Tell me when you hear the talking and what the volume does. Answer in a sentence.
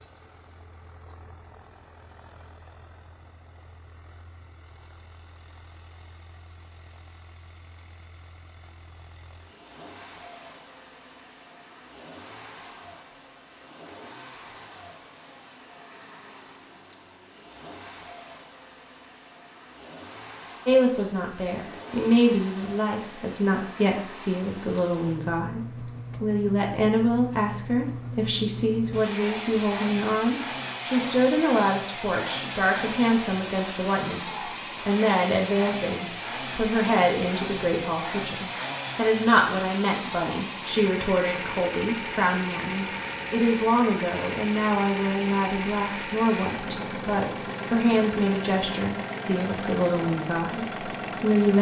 The talking can be heard from 20.6 to 51.5 s, at a steady volume.